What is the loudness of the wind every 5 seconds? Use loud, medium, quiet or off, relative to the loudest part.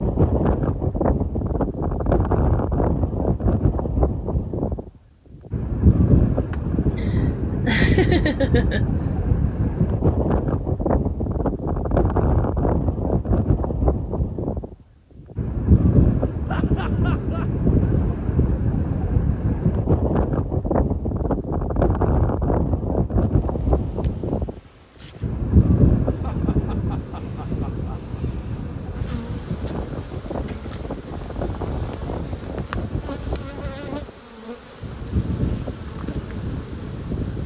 loud, loud, loud, loud, loud, loud, medium, medium.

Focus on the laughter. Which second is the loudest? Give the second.
8 s.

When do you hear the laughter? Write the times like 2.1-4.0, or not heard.
6.5-8.8, 16.4-17.4, 26.1-28.0.